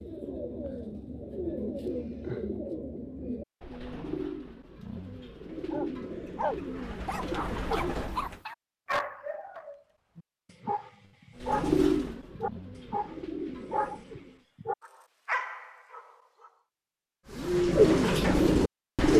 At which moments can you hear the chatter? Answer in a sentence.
The chatter can't be heard in this clip.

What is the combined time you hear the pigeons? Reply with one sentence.
The pigeons can be heard for 13 seconds in total.